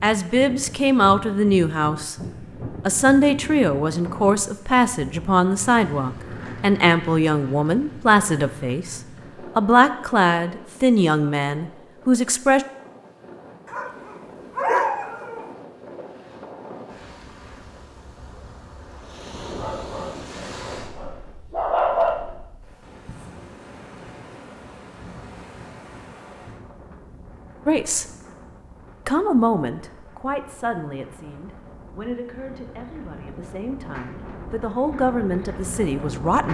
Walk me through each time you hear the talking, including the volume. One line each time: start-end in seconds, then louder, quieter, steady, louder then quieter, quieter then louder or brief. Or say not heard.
0.0-2.1 brief
2.9-12.7 steady
27.6-28.1 brief
29.1-36.4 quieter then louder.